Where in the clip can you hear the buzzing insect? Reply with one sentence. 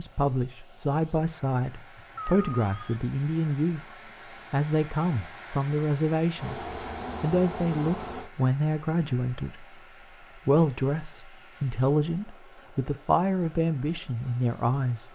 The buzzing insect can be heard from 6.3 to 8.3 s.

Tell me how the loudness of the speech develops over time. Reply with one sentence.
The volume of the speech stays about the same.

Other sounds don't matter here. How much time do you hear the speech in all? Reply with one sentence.
You can hear the speech for 14 seconds altogether.